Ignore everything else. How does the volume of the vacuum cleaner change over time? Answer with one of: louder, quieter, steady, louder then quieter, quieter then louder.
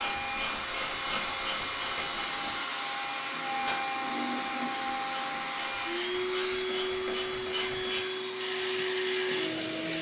steady.